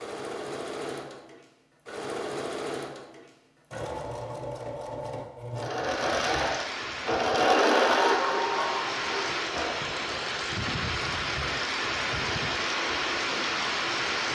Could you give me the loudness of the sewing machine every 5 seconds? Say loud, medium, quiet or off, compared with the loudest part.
medium, loud, off.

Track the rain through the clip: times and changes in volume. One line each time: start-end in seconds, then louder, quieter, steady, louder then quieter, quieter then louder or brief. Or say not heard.
5.8-14.2 louder.